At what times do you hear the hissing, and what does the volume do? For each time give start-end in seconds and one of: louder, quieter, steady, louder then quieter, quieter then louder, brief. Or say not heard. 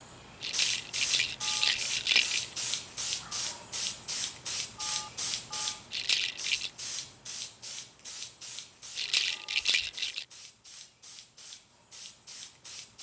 0.0-12.9 quieter.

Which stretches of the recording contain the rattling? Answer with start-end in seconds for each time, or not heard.
0.4-2.5, 5.9-6.7, 8.9-10.2.